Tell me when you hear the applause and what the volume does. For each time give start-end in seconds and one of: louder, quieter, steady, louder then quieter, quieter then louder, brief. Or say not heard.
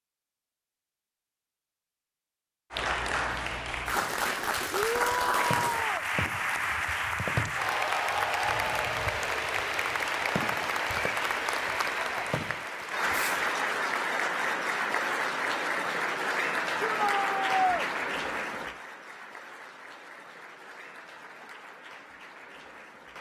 2.7-23.1 quieter.